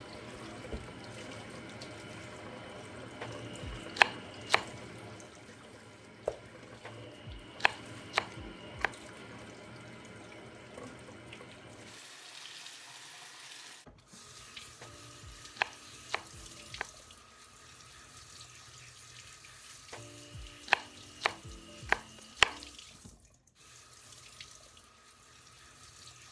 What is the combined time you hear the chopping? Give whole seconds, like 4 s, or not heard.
8 s.